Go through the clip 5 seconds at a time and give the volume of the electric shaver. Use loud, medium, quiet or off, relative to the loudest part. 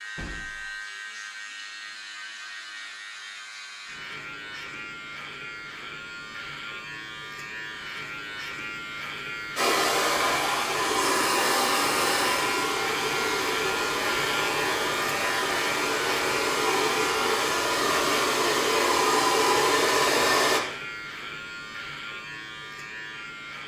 medium, medium, loud, loud, medium.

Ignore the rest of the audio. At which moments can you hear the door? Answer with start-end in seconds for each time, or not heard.
0.1-0.8.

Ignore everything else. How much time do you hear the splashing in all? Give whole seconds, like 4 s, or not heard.
not heard.